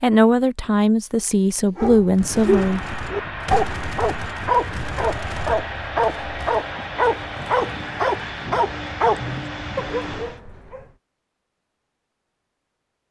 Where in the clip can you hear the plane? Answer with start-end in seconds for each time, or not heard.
2.1-10.4.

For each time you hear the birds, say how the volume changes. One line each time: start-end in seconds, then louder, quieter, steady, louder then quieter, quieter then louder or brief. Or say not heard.
not heard.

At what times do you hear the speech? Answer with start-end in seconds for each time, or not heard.
0.0-2.8.